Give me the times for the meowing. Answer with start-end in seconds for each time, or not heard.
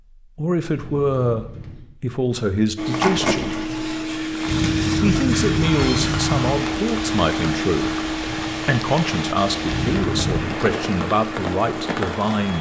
0.8-1.9, 4.5-6.7, 9.7-10.6.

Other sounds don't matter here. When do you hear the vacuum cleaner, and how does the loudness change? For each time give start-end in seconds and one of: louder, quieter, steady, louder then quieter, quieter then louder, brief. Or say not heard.
2.8-12.3 quieter.